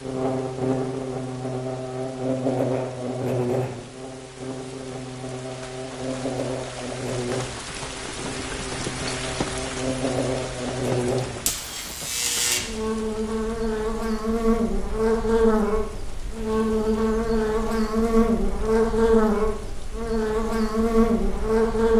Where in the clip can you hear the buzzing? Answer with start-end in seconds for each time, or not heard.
0.0-21.9.